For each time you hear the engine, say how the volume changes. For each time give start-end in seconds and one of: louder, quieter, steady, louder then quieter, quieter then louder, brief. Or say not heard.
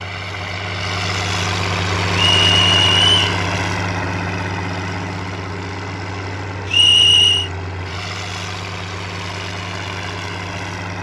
0.0-10.9 quieter.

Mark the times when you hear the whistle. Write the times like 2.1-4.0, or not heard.
2.1-3.1, 6.7-7.5.